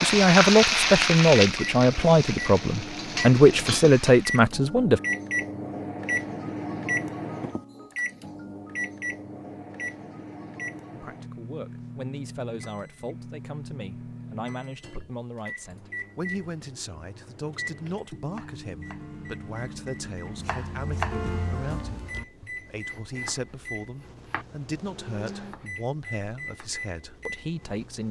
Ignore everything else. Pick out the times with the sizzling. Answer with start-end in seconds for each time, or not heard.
0.0-4.5.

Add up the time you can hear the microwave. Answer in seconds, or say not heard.
28 s.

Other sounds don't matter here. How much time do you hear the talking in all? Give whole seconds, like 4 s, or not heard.
22 s.